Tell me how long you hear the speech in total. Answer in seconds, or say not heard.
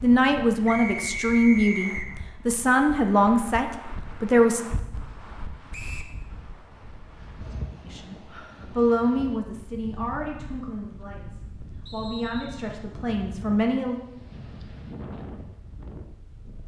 11 s.